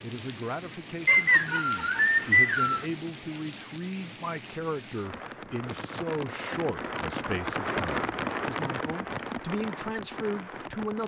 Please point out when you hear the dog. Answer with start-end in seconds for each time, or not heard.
not heard.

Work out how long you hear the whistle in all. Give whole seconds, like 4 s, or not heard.
2 s.